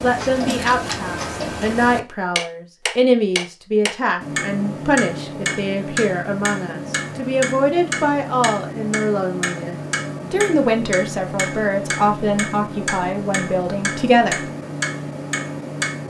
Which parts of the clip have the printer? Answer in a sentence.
The printer can't be heard in this clip.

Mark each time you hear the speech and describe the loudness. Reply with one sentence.
You can hear the speech from 0.0 to 14.5 s, at a steady volume.